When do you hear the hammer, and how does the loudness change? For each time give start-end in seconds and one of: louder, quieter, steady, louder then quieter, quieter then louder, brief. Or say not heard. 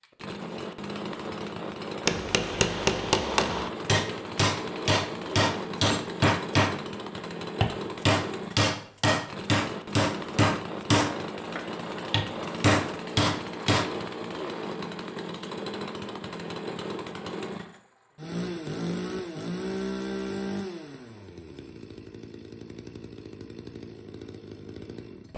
2.0-13.9 steady.